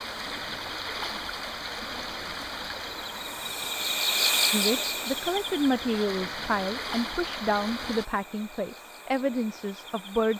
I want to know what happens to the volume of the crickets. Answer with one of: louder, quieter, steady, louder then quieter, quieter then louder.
louder then quieter.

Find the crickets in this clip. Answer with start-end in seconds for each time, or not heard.
0.0-10.3.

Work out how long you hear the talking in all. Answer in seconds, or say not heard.
6 s.